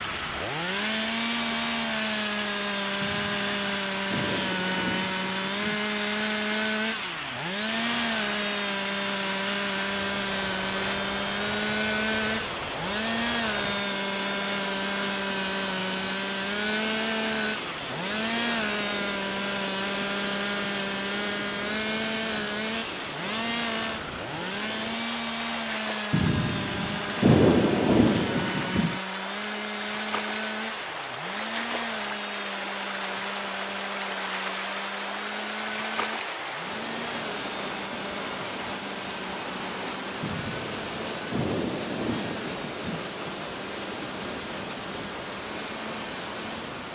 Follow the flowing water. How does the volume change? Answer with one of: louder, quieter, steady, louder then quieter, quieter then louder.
steady.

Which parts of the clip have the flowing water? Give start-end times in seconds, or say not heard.
0.0-46.9.